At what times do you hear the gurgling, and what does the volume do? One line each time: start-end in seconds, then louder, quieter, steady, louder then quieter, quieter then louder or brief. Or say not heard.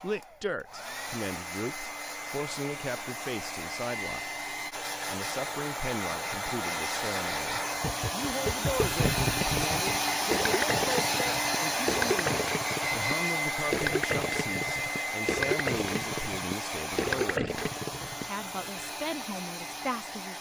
7.8-18.2 steady.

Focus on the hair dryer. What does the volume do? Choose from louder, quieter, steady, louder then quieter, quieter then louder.
louder then quieter.